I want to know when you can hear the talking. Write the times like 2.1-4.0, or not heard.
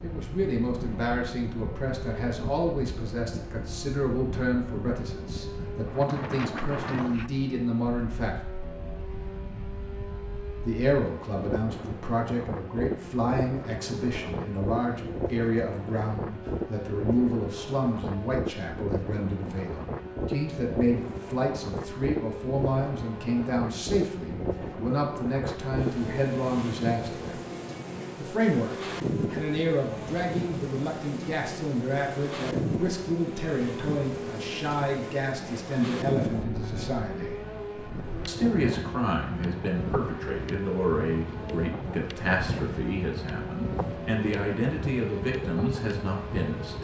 0.0-8.4, 10.7-27.4, 28.1-37.4, 38.2-46.7.